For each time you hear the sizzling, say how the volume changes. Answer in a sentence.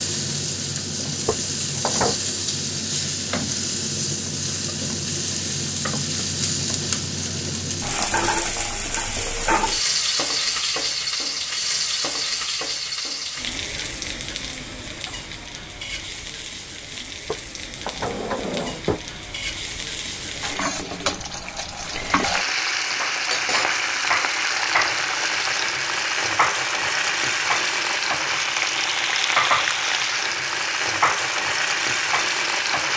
You can hear the sizzling from 0.0 to 32.9 s, getting quieter then louder.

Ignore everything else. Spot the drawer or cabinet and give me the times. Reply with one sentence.
The drawer or cabinet can be heard from 1.2 to 2.1 s and from 17.2 to 19.1 s.